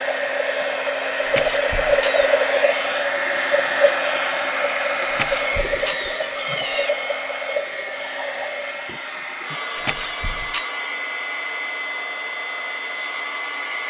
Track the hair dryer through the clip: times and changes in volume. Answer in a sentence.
The hair dryer can be heard from 0.0 to 13.8 s, getting quieter.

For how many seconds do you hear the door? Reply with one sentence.
You can hear the door for 4 seconds altogether.